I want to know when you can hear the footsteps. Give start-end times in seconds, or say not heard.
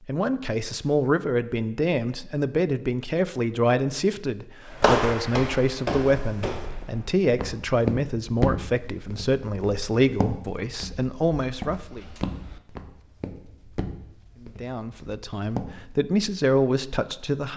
4.7-16.1.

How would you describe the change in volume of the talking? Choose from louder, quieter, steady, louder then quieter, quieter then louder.
steady.